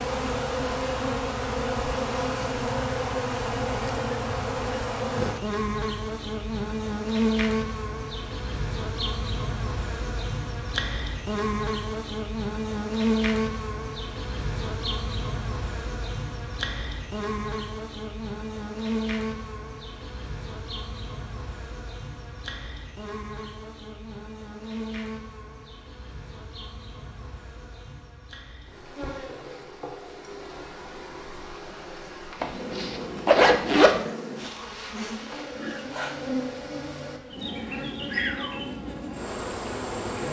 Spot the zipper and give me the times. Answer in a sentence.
You can hear the zipper from 32.4 to 34.0 s.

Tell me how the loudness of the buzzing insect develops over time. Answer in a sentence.
The loudness of the buzzing insect goes down, then up.